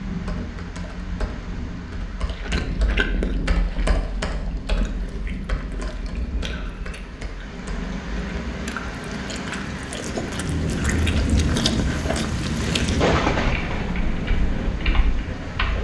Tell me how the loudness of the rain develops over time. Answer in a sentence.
The loudness of the rain goes up.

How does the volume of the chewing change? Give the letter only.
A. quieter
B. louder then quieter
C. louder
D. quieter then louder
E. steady
D.